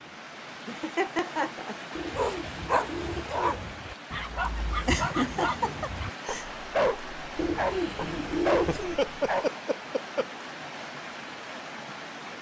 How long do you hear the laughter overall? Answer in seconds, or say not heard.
4 s.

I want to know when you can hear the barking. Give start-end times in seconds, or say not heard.
2.1-9.4.